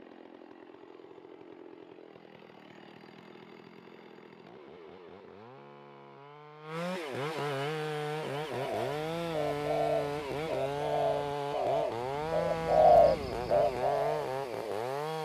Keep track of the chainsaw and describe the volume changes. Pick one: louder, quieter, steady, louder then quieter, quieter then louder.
louder.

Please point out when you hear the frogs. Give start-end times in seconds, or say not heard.
not heard.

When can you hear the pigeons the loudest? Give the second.
13 s.